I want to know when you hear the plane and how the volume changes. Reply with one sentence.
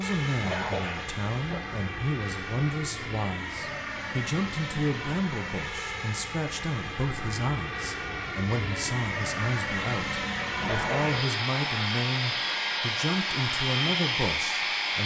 The plane can be heard from 0.0 to 15.0 s, getting louder.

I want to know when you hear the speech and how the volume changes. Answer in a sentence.
You can hear the speech from 0.0 to 15.0 s, at a steady volume.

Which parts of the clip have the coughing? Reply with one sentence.
You can hear the coughing from 0.2 to 1.6 s and from 10.4 to 11.2 s.